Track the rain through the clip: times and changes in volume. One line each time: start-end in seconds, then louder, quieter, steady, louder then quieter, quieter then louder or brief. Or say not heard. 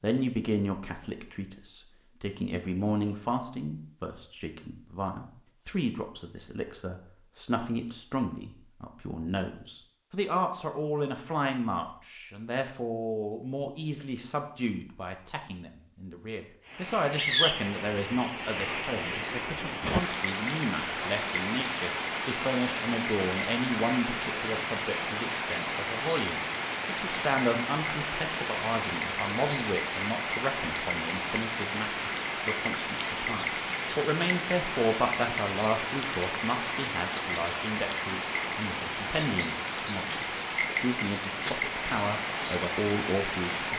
16.6-43.7 steady.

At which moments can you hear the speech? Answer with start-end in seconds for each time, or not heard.
0.0-43.7.